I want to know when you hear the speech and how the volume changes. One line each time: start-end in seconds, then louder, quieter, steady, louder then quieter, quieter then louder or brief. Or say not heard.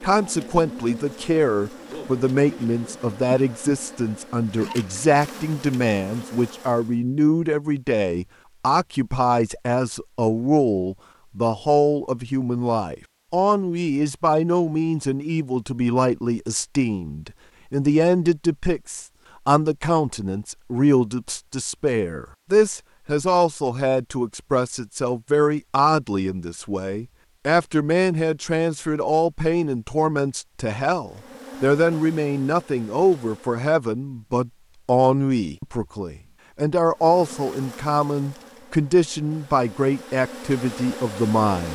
0.0-41.7 steady.